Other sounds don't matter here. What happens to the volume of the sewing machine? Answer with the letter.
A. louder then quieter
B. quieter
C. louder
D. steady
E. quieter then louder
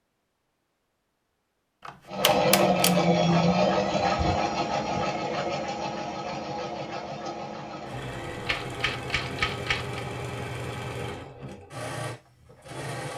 B.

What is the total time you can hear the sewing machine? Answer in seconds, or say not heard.
11 s.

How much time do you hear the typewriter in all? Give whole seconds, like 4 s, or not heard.
3 s.